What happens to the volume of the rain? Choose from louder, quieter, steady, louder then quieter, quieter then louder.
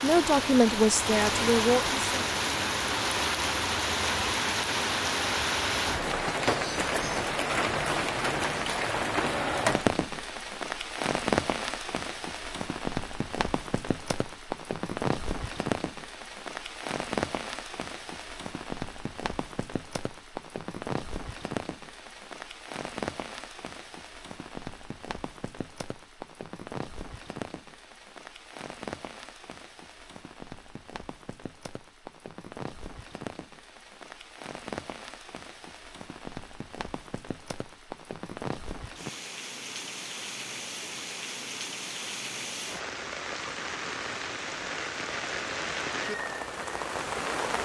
quieter then louder.